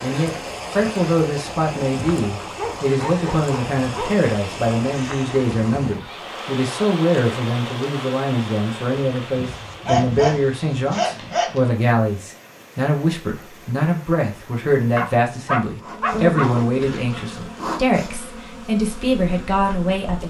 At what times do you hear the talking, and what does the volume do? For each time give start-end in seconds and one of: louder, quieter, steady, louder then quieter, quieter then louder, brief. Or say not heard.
0.0-20.2 steady.